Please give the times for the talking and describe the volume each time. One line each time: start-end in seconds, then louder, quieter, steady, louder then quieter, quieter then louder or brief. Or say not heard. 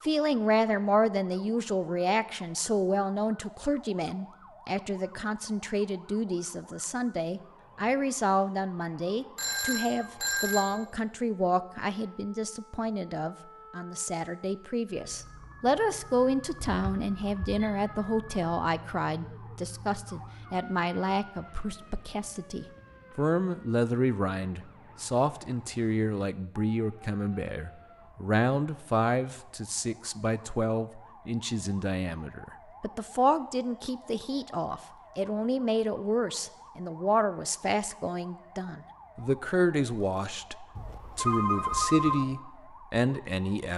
0.0-43.7 steady.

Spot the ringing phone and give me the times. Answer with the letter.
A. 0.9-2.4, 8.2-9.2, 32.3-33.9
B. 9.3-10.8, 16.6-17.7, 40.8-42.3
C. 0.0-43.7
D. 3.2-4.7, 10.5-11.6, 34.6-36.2
B.